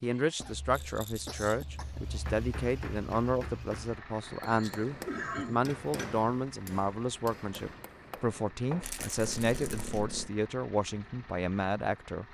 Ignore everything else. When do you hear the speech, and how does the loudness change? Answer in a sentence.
The speech can be heard from 0.0 to 12.2 s, at a steady volume.